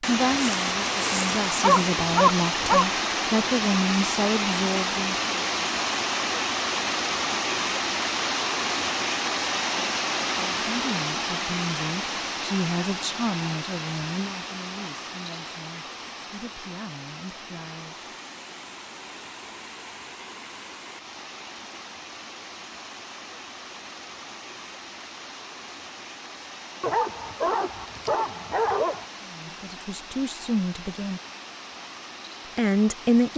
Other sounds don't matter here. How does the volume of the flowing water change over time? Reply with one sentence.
The loudness of the flowing water goes down.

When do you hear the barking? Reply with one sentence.
The barking can be heard from 0.2 to 2.9 s and from 26.8 to 29.1 s.